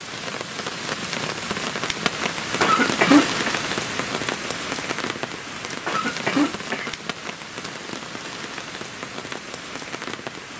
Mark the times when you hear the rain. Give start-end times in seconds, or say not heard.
0.0-10.5.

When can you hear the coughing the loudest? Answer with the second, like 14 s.
3 s.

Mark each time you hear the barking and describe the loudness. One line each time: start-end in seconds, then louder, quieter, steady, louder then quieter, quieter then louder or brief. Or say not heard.
not heard.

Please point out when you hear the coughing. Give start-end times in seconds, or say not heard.
2.6-3.5, 5.8-7.0.